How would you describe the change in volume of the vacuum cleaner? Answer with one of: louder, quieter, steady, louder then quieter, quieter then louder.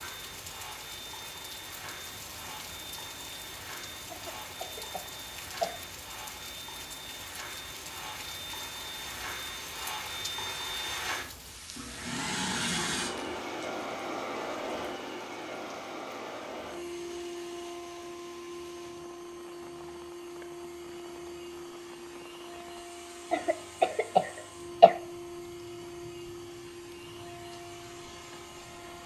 louder then quieter.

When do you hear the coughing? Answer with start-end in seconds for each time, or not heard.
4.1-6.0, 23.3-24.9.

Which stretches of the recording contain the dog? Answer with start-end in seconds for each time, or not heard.
not heard.